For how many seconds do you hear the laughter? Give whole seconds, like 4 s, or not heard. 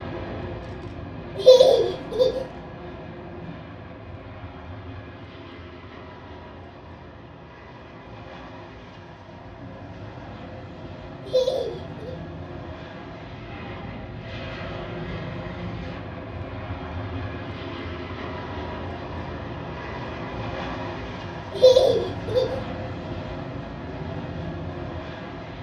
3 s.